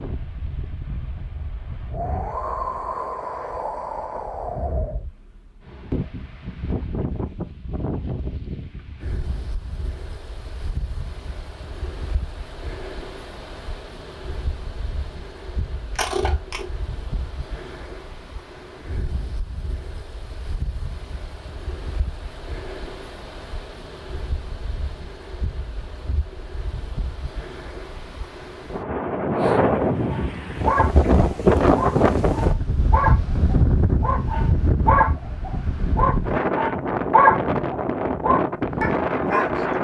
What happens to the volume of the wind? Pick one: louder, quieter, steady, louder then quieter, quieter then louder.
quieter then louder.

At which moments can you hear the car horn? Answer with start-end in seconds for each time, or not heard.
not heard.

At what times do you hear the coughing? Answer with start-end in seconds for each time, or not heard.
15.9-16.6.